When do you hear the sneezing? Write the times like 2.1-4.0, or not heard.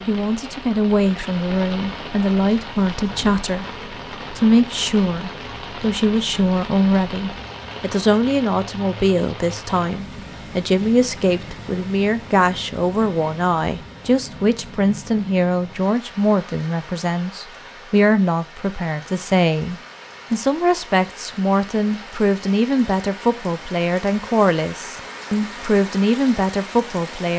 not heard.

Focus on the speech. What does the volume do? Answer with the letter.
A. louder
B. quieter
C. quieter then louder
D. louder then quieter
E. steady
E.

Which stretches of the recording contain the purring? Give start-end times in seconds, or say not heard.
not heard.